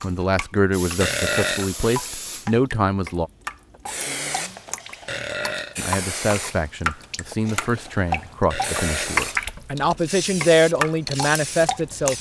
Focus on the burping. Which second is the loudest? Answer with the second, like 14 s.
1 s.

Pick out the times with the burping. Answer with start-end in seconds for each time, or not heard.
1.0-2.0, 5.0-5.8, 8.5-9.6.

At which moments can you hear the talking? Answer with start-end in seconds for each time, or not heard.
0.0-3.3, 5.8-12.1.